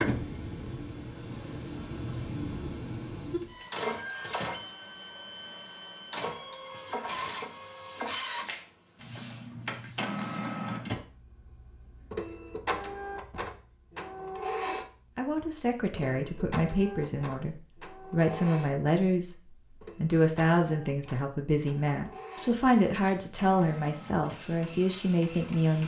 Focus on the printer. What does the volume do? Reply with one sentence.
The loudness of the printer goes down.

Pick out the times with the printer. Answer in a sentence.
The printer can be heard from 0.0 to 25.8 s.